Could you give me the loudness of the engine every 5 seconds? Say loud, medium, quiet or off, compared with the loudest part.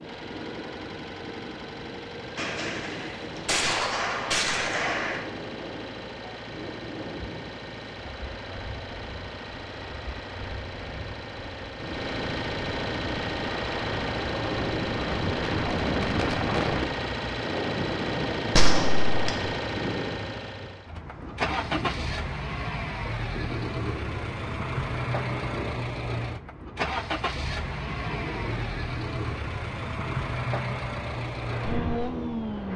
medium, medium, loud, loud, loud, loud, loud.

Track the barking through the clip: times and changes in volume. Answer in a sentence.
The barking can't be heard in this clip.